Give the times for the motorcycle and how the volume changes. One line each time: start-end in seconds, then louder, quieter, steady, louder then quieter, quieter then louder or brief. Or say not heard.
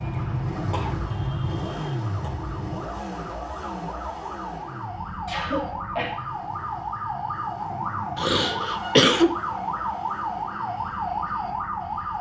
0.0-12.1 quieter.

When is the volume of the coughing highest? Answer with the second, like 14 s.
9 s.